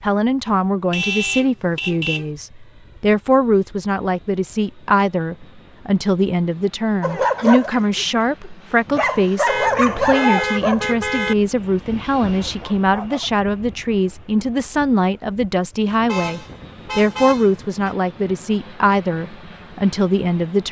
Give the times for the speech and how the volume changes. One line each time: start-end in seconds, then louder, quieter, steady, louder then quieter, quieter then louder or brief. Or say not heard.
0.0-20.6 steady.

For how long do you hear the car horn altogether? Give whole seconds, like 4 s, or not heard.
5 s.